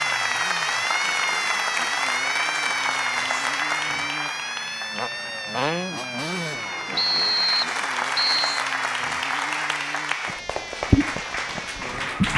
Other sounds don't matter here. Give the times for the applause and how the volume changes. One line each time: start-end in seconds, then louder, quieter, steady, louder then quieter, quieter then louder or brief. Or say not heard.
0.0-12.3 quieter then louder.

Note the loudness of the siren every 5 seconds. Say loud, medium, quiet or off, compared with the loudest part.
loud, medium, medium.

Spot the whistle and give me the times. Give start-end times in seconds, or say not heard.
7.0-8.6.